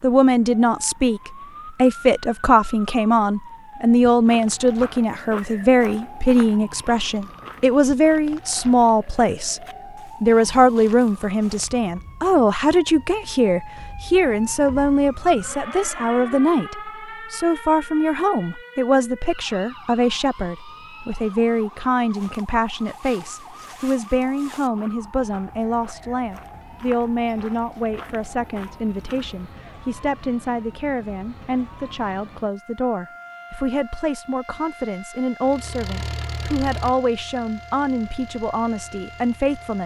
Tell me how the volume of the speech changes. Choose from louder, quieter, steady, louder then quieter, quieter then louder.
quieter.